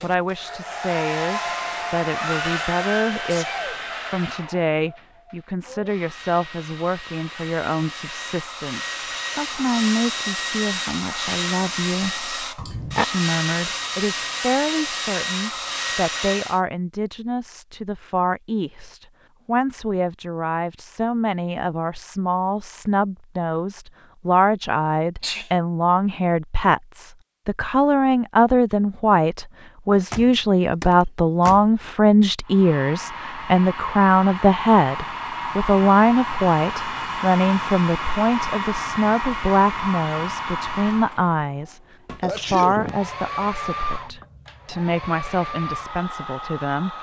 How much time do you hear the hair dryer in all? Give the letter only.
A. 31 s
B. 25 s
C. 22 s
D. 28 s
A.